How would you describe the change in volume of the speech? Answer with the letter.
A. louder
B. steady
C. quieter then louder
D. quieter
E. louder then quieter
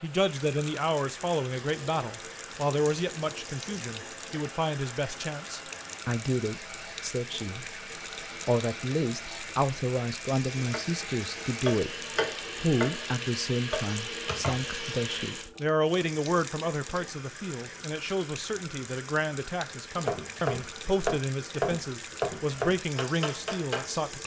B.